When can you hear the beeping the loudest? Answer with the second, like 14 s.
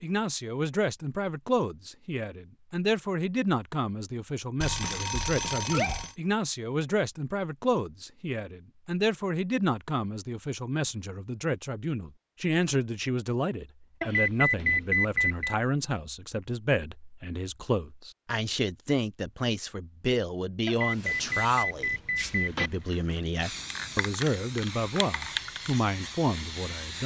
15 s.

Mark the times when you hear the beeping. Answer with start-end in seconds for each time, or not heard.
4.6-6.2, 14.0-15.6, 20.6-22.7.